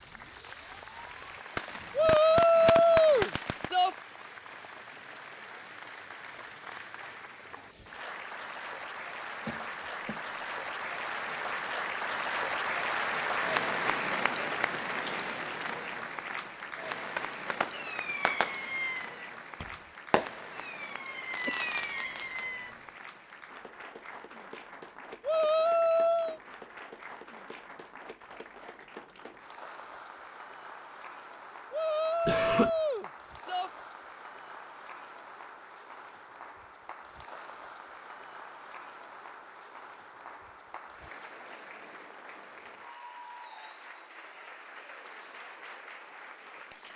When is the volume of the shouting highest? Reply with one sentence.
The volume of the shouting peaks at 3 seconds.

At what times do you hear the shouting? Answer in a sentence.
The shouting can be heard from 1.9 to 4.0 s, from 25.2 to 26.4 s and from 31.7 to 33.7 s.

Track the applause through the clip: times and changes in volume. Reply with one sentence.
You can hear the applause from 0.0 to 46.9 s, getting louder then quieter.